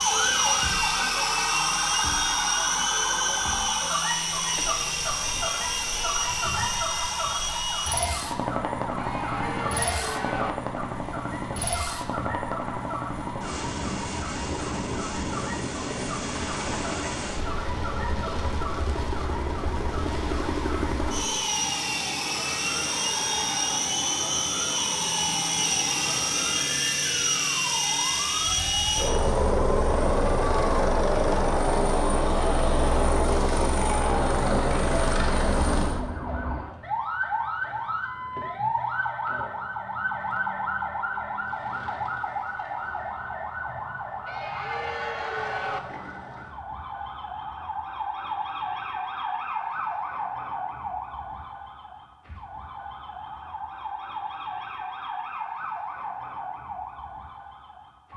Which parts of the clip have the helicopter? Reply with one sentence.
You can hear the helicopter from 0.0 to 36.0 s.